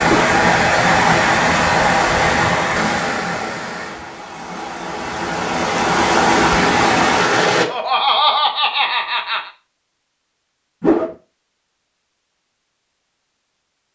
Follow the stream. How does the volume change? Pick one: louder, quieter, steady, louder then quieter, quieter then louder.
quieter then louder.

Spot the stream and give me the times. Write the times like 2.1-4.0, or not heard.
0.0-7.7.